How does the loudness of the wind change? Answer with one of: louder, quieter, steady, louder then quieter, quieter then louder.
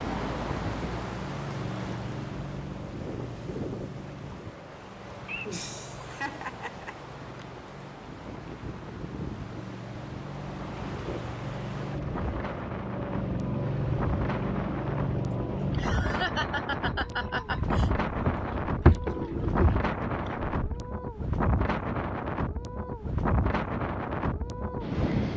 louder.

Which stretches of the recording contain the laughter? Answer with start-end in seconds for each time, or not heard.
5.2-7.5, 15.3-17.9.